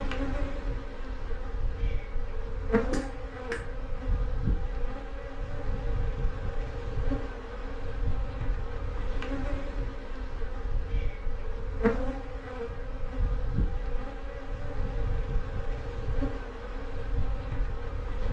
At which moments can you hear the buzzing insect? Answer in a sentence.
You can hear the buzzing insect from 0.0 to 18.2 s.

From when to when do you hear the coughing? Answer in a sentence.
You can hear the coughing from 2.9 to 3.6 s.